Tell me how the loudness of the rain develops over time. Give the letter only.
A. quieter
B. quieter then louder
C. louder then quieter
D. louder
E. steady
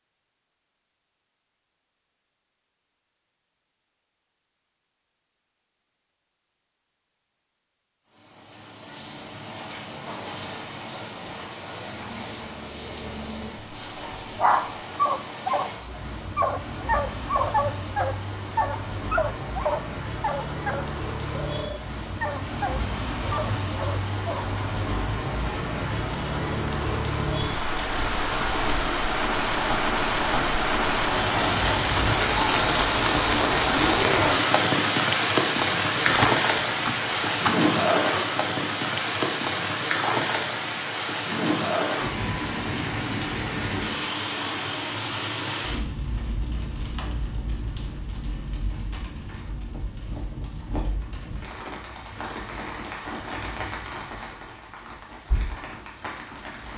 C.